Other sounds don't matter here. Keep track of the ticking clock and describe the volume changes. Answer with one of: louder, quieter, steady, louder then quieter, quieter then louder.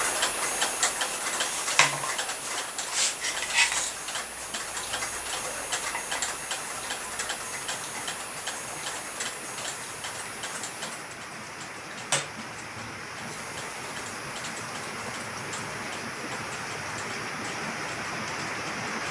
quieter.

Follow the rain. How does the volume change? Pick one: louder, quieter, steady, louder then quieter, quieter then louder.
louder.